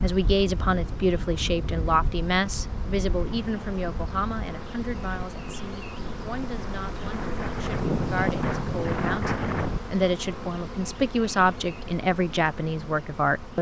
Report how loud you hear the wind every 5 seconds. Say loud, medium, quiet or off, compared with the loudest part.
medium, loud, off.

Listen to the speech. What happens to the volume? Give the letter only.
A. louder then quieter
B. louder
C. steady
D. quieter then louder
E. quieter
D.